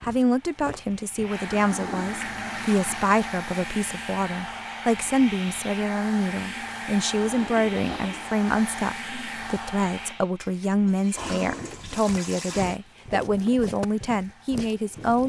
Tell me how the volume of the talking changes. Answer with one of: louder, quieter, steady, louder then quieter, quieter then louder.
steady.